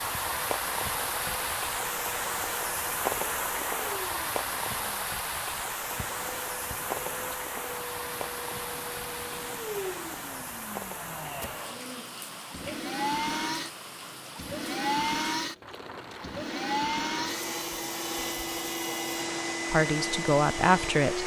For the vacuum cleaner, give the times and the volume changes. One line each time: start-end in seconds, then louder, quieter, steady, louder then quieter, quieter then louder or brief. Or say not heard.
0.0-21.2 louder.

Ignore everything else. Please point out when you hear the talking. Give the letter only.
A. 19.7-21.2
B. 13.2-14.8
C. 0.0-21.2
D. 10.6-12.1
A.